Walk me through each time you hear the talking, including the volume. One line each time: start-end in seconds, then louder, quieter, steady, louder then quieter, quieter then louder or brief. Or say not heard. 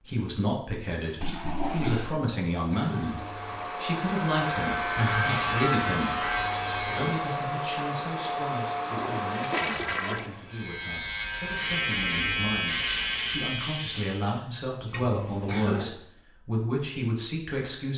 0.0-17.9 quieter then louder.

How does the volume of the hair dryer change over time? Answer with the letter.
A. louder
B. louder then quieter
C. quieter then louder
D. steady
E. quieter
D.